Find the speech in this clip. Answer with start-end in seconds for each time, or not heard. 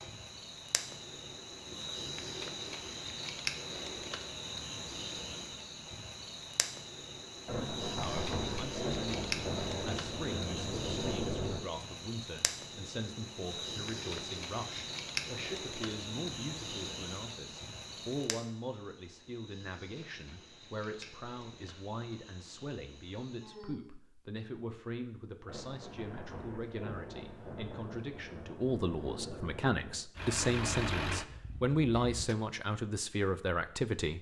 7.5-34.1.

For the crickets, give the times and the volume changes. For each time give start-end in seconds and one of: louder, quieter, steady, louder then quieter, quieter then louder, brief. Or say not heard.
0.0-23.8 quieter.